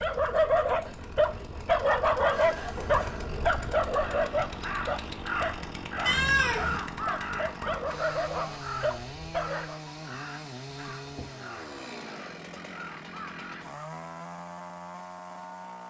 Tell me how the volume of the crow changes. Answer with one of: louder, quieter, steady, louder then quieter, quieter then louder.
quieter.